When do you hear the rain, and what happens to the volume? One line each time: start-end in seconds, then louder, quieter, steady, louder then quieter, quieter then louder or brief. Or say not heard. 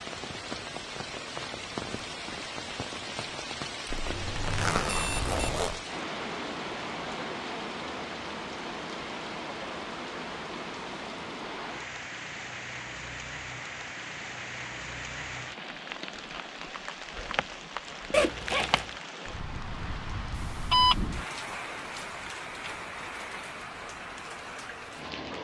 0.0-25.3 steady.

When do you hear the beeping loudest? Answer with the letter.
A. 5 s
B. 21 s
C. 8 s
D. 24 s
B.